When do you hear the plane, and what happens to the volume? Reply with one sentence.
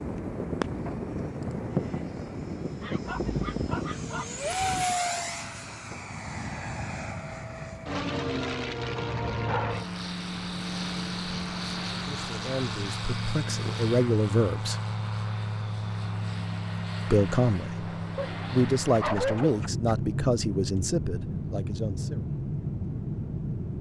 The plane can be heard from 0.0 to 23.7 s, at a steady volume.